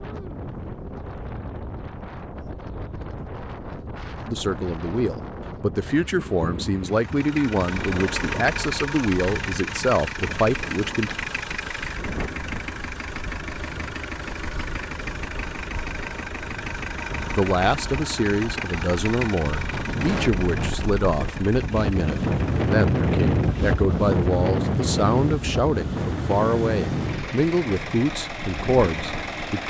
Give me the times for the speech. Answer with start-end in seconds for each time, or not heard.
4.2-11.2, 17.3-29.6.